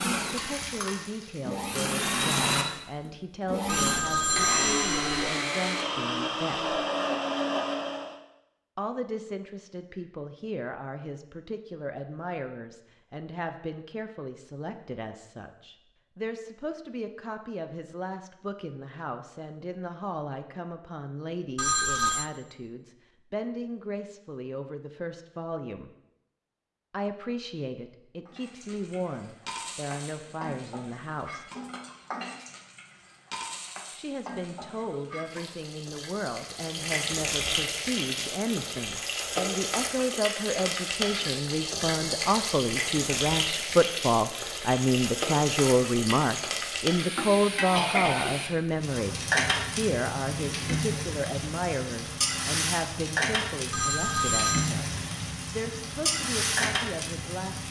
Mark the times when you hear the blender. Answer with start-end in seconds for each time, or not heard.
0.0-8.2.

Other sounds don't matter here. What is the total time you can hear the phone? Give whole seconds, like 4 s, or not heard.
3 s.